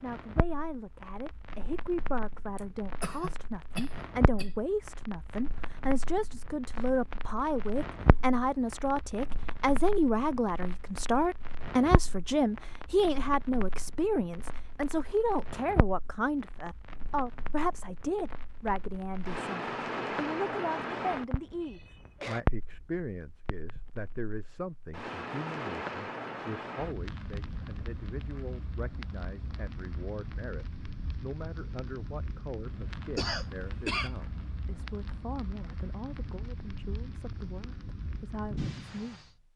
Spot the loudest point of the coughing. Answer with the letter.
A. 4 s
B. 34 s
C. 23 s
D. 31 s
B.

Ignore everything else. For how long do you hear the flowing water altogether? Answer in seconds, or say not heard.
not heard.